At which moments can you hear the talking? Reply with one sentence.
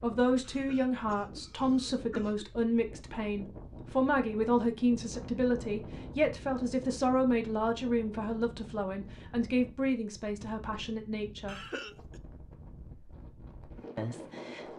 The talking can be heard from 0.0 to 11.7 s and from 13.9 to 14.7 s.